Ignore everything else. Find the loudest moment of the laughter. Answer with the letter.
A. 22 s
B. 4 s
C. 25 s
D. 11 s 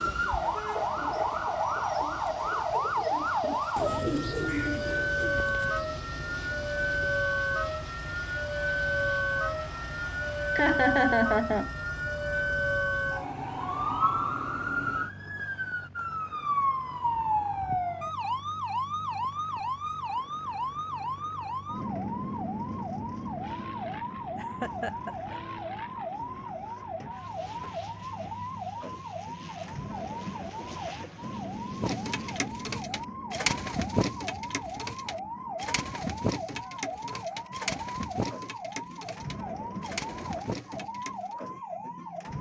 D.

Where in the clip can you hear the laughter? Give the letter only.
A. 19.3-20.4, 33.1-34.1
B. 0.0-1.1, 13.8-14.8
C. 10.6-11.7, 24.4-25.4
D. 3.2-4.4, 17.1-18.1
C.